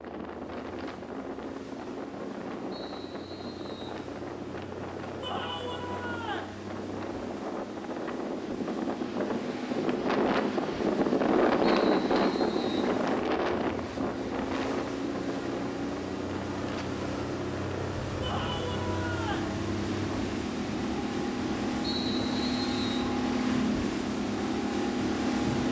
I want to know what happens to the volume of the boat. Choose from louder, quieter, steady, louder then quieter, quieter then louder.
louder.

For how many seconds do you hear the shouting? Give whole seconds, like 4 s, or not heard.
3 s.